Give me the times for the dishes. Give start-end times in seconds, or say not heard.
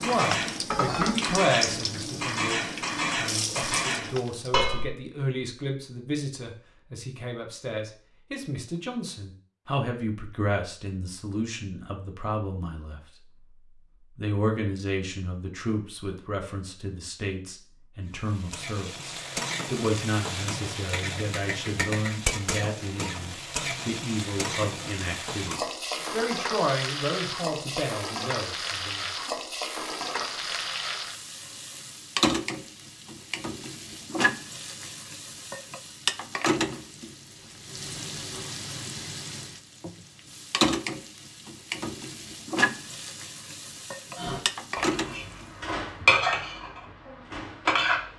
0.0-4.9, 44.1-48.1.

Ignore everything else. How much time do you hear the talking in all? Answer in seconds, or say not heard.
28 s.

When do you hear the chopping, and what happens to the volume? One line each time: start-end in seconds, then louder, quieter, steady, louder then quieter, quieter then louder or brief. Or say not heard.
not heard.